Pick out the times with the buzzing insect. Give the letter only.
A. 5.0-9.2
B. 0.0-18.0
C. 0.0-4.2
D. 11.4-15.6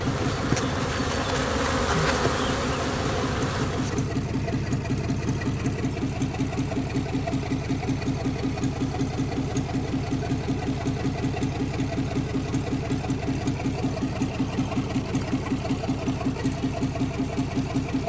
C.